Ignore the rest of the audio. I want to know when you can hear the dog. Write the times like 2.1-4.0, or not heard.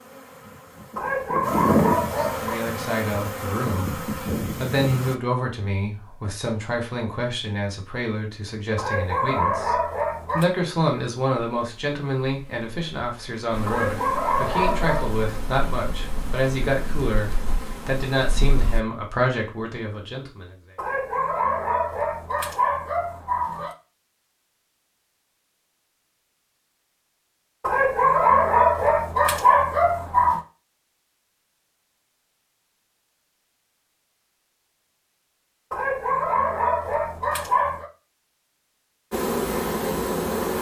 0.9-2.6, 8.8-10.4, 13.7-15.2, 20.8-23.8, 27.6-30.4, 35.7-37.9.